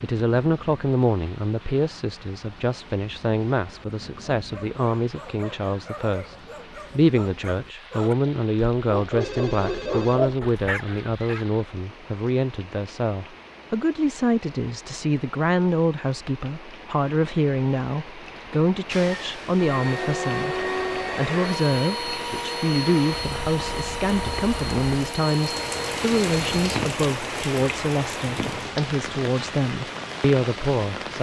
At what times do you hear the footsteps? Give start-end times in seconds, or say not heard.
not heard.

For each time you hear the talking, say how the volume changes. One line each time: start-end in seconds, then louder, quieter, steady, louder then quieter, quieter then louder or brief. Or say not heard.
0.0-31.1 steady.